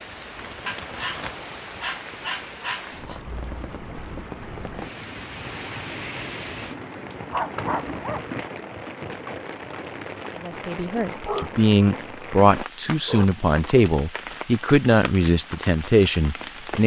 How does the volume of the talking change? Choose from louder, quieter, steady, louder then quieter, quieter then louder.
steady.